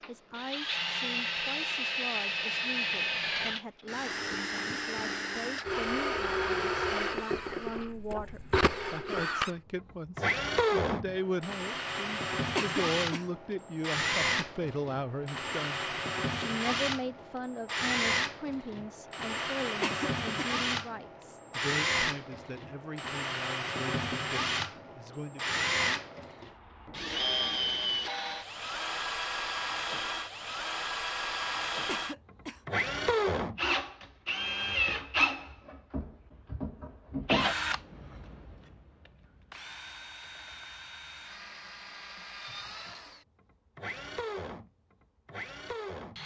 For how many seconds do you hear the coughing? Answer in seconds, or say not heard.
2 s.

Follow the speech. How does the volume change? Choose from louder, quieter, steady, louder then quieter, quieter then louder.
louder then quieter.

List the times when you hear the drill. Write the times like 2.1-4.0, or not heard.
0.0-46.2.